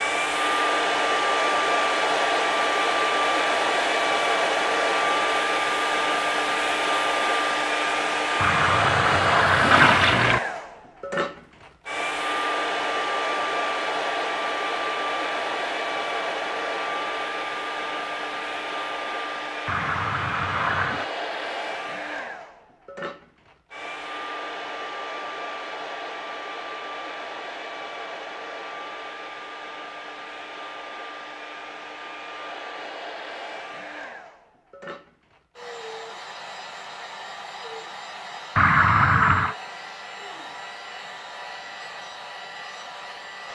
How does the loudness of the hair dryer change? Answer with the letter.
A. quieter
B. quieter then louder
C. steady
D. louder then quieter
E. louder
A.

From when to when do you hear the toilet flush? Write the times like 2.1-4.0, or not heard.
8.4-10.4, 19.6-21.1, 38.5-39.5.